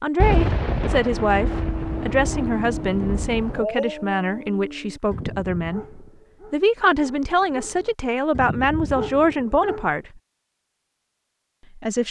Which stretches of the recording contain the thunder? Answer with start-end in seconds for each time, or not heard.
0.2-3.6.